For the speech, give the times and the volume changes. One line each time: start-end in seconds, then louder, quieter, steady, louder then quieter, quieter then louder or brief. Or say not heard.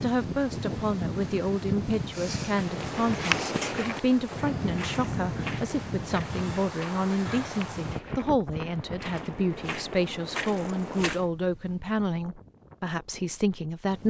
0.0-14.0 steady.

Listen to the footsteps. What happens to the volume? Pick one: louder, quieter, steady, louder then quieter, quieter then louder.
quieter then louder.